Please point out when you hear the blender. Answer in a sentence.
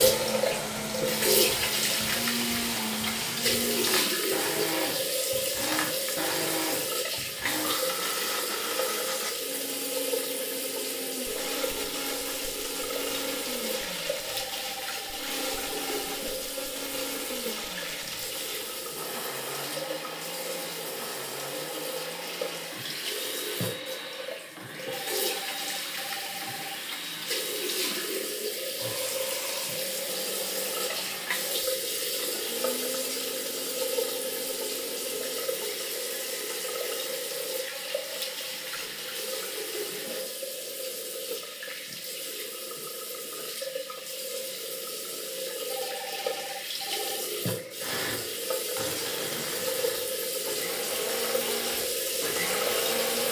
The blender can be heard from 0.0 to 40.3 s and from 47.8 to 53.2 s.